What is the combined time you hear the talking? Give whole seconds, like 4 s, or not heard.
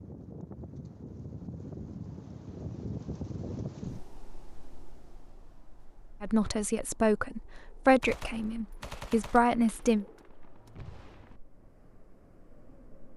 4 s.